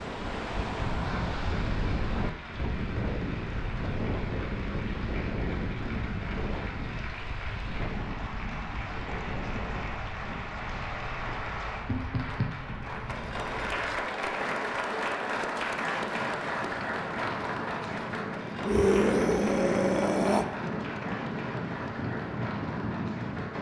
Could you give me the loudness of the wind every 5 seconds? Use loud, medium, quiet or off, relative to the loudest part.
loud, loud, medium, medium, loud.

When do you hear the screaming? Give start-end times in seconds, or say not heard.
18.6-20.4.